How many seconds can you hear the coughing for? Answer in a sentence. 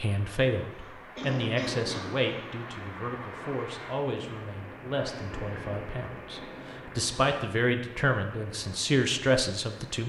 You can hear the coughing for 2 seconds altogether.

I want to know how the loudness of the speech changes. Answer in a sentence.
The volume of the speech goes down, then up.